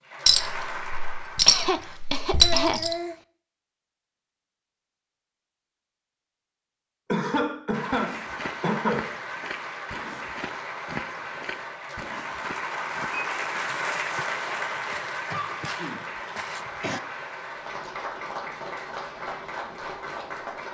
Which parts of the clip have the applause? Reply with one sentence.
You can hear the applause from 0.0 to 1.9 s and from 7.7 to 20.6 s.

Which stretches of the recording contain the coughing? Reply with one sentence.
You can hear the coughing from 1.4 to 3.1 s, from 7.1 to 9.2 s and from 15.3 to 17.0 s.